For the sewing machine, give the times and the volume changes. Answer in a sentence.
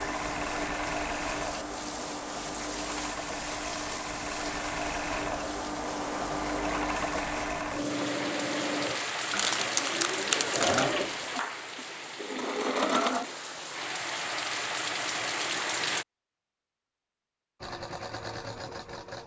You can hear the sewing machine from 0.0 to 13.3 s, at a steady volume; and briefly from 17.6 to 19.2 s.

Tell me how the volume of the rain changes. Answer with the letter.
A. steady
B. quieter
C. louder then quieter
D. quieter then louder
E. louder
E.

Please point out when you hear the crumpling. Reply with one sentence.
You can hear the crumpling from 9.3 to 10.9 s.